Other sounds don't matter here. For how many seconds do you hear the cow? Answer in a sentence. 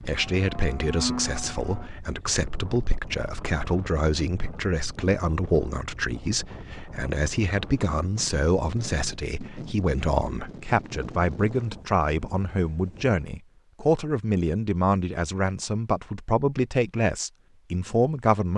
You can hear the cow for 2 seconds altogether.